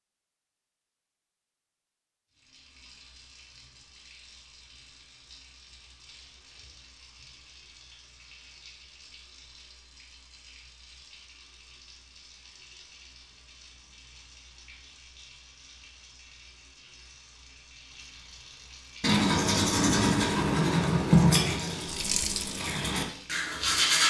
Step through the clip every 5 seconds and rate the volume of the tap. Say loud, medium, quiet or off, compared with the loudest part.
quiet, quiet, quiet, quiet, loud.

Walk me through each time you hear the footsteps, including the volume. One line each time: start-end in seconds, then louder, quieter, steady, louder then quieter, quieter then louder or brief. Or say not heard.
not heard.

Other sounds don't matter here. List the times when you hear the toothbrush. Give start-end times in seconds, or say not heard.
19.0-24.0.